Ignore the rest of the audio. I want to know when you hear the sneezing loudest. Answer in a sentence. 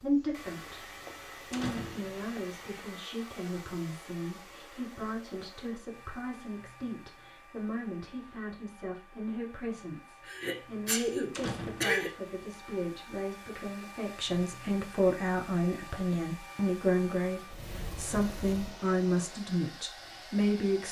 The volume of the sneezing peaks at 12 seconds.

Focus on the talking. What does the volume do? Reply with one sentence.
The volume of the talking goes up.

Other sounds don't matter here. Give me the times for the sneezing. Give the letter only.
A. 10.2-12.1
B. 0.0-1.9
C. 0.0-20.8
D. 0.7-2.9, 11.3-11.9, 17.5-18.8
A.